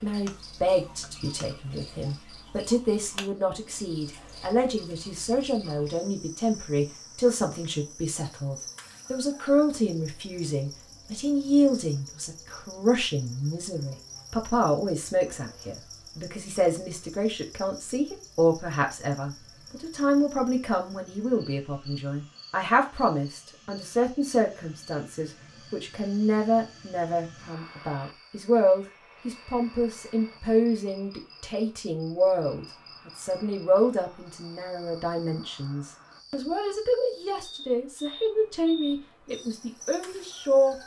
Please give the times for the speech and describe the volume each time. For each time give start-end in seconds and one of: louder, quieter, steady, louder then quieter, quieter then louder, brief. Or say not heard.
0.0-40.8 steady.